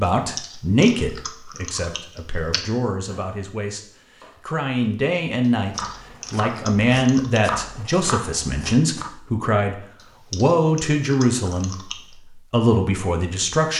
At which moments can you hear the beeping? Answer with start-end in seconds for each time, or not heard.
not heard.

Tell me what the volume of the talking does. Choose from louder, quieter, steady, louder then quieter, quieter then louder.
steady.